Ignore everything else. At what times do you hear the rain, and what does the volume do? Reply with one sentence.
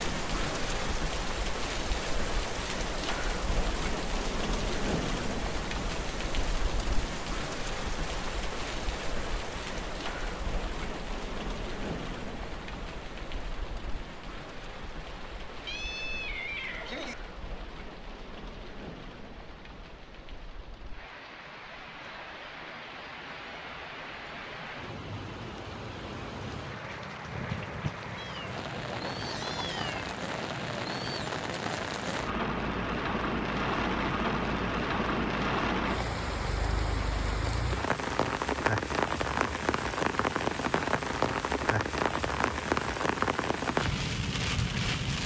The rain can be heard from 0.0 to 45.2 s, getting quieter then louder.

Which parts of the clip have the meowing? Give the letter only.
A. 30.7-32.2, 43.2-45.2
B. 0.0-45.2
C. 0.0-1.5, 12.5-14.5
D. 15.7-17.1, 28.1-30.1
D.